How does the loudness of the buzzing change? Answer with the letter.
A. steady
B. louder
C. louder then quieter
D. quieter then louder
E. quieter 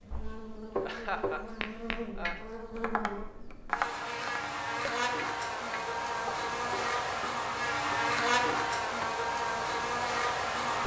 B.